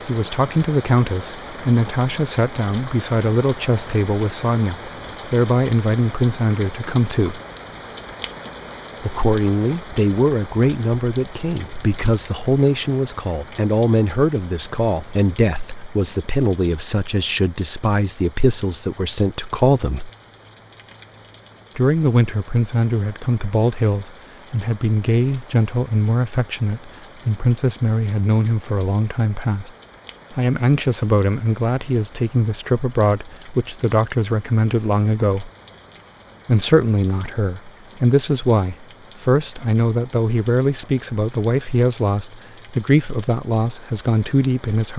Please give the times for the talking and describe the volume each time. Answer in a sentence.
The talking can be heard from 0.1 to 7.4 s, at a steady volume; from 9.0 to 20.1 s, at a steady volume; from 21.8 to 29.7 s, at a steady volume; from 30.3 to 35.5 s, at a steady volume; and from 36.5 to 44.9 s, at a steady volume.